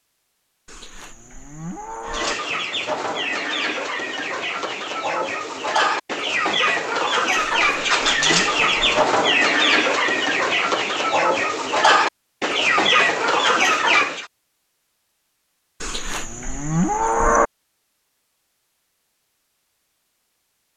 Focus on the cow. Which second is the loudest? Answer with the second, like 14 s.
17 s.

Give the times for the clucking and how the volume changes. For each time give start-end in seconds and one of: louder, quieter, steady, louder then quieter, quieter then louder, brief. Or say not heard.
2.0-14.2 louder.